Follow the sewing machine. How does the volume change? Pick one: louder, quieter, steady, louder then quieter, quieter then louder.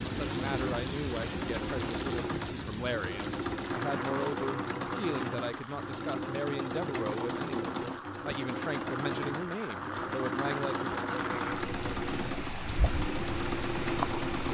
steady.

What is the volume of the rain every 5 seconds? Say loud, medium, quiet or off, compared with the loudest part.
loud, medium, loud.